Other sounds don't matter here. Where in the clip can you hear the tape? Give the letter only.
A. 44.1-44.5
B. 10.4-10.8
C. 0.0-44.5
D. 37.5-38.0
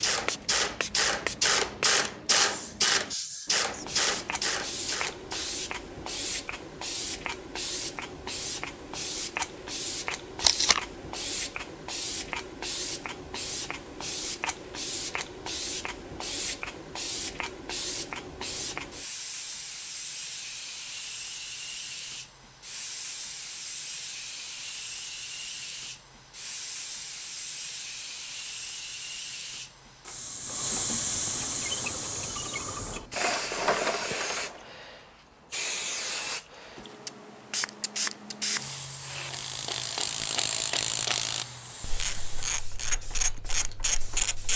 B.